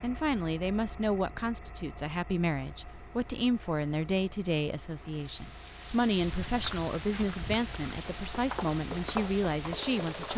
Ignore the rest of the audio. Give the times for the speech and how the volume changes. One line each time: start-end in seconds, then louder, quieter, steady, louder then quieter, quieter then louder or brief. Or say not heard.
0.0-10.3 steady.